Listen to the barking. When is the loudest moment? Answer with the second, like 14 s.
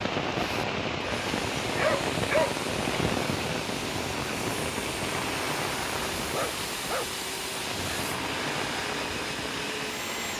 2 s.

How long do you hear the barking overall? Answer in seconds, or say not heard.
2 s.